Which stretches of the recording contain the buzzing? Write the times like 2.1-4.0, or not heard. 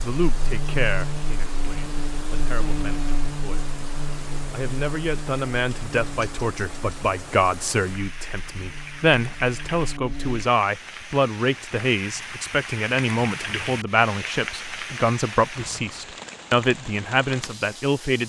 0.1-10.4.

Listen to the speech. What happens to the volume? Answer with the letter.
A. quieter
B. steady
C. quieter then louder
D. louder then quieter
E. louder
E.